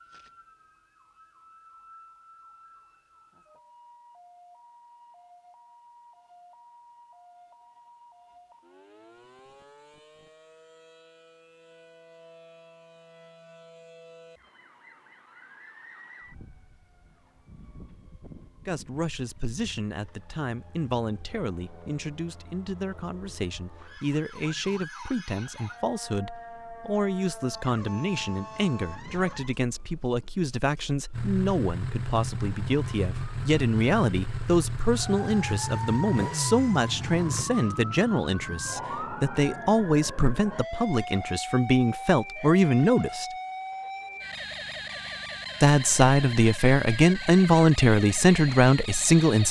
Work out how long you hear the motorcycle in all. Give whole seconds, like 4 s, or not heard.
6 s.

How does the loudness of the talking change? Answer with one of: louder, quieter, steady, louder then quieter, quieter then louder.
louder.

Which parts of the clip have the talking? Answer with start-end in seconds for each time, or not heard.
18.6-43.2, 45.6-49.4.